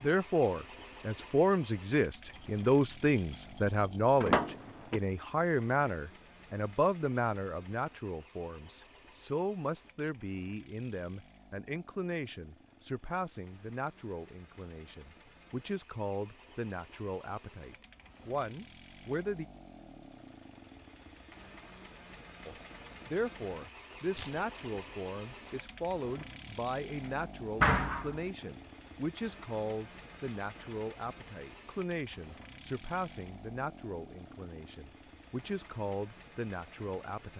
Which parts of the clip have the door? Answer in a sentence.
The door can be heard from 4.2 to 5.0 s and from 27.6 to 28.2 s.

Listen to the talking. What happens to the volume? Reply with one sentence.
The loudness of the talking goes down.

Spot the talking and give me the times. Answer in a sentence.
The talking can be heard from 0.0 to 19.4 s and from 22.4 to 37.3 s.